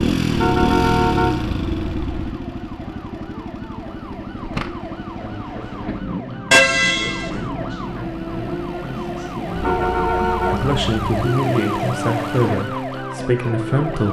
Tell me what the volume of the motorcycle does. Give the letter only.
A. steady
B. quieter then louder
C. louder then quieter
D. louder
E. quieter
E.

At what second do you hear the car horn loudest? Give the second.
7 s.